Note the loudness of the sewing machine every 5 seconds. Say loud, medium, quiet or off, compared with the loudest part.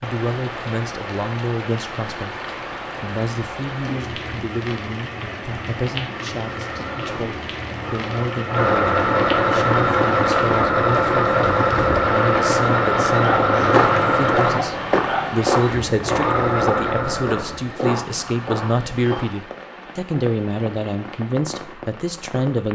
off, loud, loud, medium, off.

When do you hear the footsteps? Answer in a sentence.
The footsteps can be heard from 13.6 to 19.3 s.